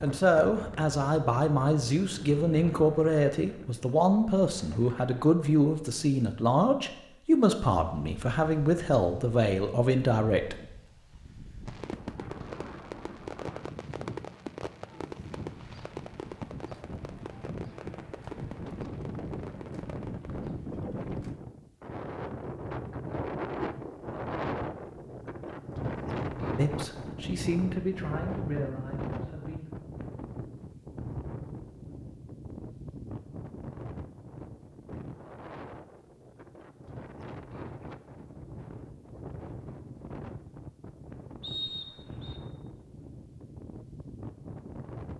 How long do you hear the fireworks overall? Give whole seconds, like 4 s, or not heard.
9 s.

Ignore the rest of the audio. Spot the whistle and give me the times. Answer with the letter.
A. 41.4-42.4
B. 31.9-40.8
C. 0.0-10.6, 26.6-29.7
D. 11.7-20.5
A.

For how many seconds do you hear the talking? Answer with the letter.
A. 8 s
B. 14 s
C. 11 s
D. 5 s
B.